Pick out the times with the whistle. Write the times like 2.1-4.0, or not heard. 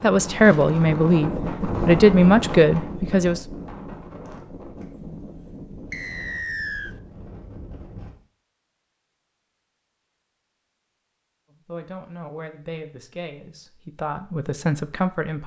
5.9-7.0.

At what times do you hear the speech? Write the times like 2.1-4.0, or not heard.
0.0-3.5, 11.5-15.4.